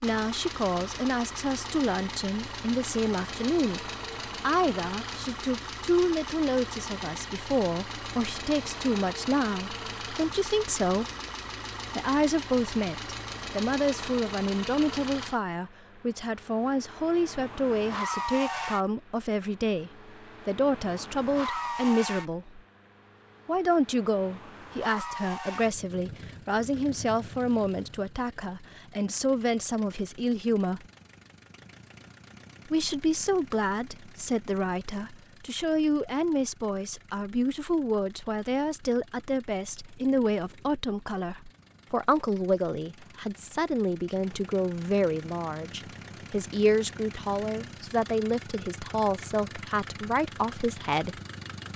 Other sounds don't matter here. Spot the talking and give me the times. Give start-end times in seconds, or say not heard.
0.0-11.1, 11.9-22.6, 23.4-30.9, 32.6-51.2.